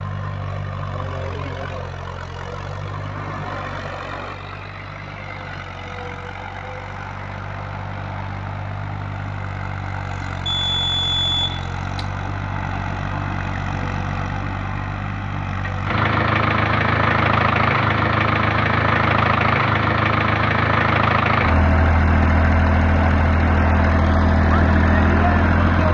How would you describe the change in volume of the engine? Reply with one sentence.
The loudness of the engine goes up.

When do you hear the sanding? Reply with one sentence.
The sanding can't be heard in this clip.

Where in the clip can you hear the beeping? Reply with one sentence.
The beeping can be heard from 10.4 to 12.1 s.